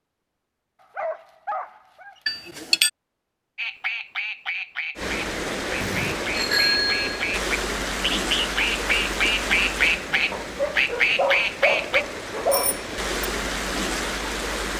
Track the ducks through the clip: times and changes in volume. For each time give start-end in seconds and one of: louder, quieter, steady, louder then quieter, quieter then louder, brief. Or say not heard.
3.5-12.1 louder.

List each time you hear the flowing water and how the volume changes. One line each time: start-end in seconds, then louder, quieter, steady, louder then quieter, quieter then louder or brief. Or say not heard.
5.0-14.7 quieter then louder.